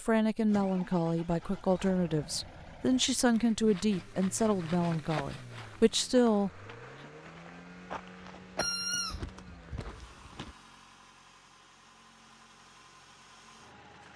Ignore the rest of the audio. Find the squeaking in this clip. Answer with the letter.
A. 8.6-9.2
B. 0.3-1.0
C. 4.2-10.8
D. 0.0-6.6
A.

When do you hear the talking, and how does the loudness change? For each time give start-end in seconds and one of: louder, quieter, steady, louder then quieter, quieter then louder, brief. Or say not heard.
0.0-6.6 steady.